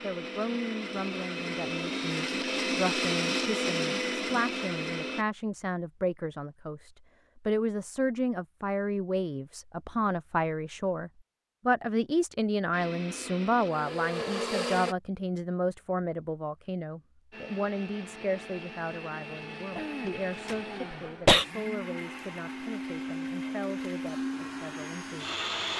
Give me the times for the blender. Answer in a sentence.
The blender can be heard from 0.0 to 5.2 s, from 12.7 to 14.9 s and from 17.3 to 25.7 s.